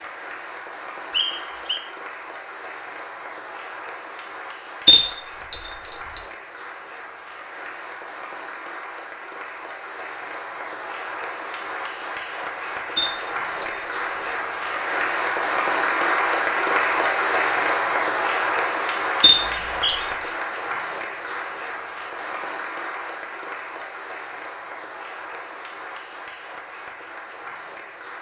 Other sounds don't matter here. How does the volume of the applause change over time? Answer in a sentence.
The volume of the applause goes up, then down.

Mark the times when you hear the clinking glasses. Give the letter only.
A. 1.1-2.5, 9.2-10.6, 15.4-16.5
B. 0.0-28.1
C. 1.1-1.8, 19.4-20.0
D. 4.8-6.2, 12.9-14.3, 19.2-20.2
D.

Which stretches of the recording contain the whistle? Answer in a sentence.
You can hear the whistle from 1.1 to 1.8 s and from 19.4 to 20.0 s.